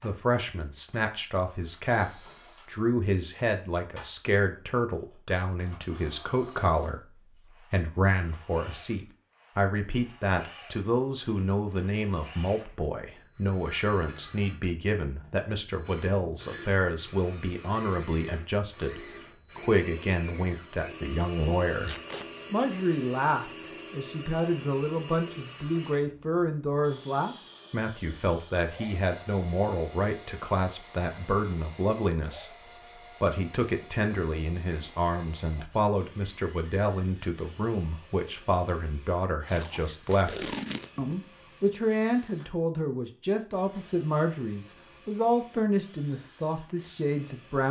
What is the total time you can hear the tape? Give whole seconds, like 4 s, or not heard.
2 s.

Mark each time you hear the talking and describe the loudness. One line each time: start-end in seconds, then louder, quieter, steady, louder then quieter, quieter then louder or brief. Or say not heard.
0.0-47.6 steady.